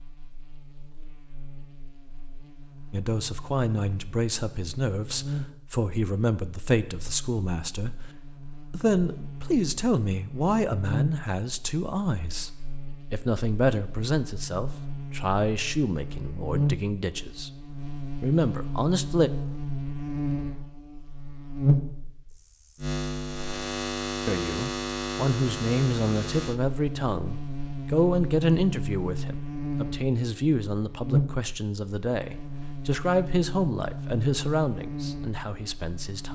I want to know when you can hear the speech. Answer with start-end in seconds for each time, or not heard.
2.9-8.0, 8.7-12.5, 13.1-17.5, 18.2-19.3, 24.2-36.3.